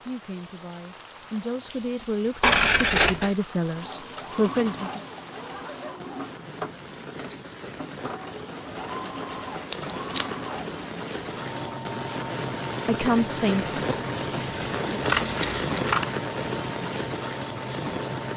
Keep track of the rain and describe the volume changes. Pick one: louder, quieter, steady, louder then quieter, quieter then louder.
louder.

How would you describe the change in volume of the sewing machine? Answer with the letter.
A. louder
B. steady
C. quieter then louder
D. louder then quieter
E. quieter
B.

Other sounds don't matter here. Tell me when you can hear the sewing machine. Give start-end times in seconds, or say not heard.
3.7-18.3.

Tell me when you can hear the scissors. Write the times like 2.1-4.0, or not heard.
2.4-3.4, 9.7-10.3, 15.0-16.1.